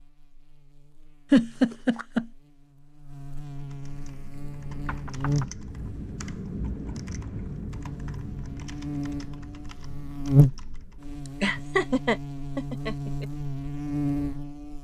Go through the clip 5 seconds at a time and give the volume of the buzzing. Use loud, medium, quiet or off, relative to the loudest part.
quiet, medium, loud.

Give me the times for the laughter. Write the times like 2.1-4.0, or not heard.
1.3-2.2, 11.2-13.2.